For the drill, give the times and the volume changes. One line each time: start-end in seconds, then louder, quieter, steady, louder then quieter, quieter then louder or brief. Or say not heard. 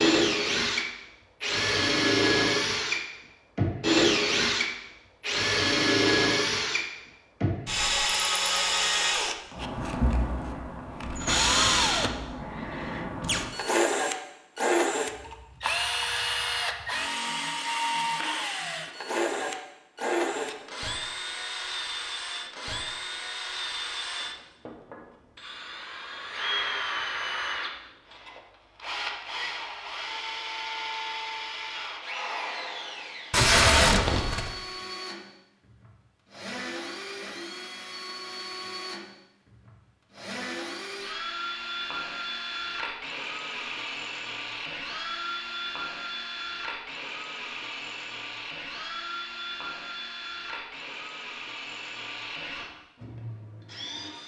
0.0-54.2 quieter.